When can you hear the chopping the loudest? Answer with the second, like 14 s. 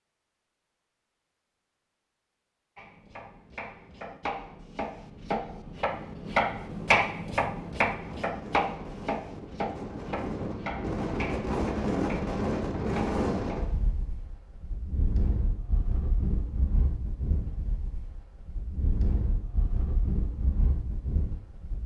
7 s.